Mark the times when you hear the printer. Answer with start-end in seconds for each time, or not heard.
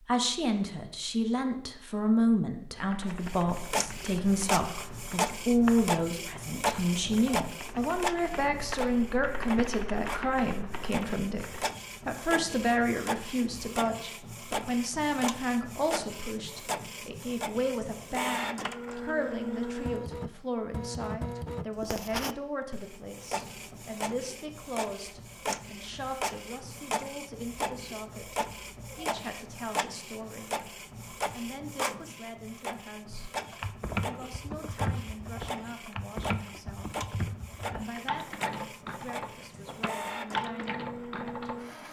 3.0-41.8.